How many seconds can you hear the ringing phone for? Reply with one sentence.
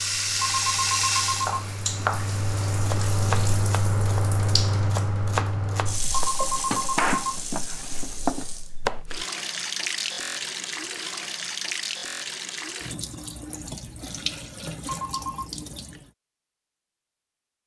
The ringing phone can be heard for 3 seconds in total.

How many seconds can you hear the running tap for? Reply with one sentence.
You can hear the running tap for 16 seconds altogether.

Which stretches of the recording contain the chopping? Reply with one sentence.
You can hear the chopping from 1.4 to 9.0 s.